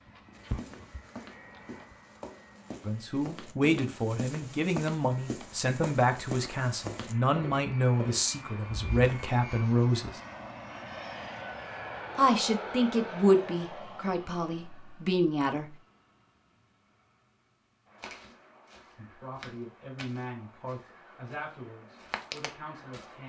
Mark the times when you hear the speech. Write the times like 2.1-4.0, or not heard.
2.9-10.2, 12.2-15.8, 18.9-23.2.